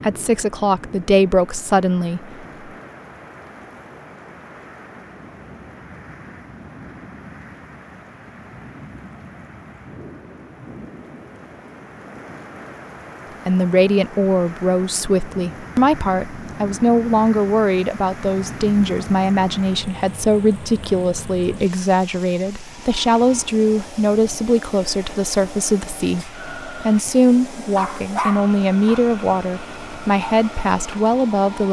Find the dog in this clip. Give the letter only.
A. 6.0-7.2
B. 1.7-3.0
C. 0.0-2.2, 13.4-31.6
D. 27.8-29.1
D.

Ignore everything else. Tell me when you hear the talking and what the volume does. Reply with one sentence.
You can hear the talking briefly from 0.0 to 2.2 s; and from 13.4 to 31.6 s, at a steady volume.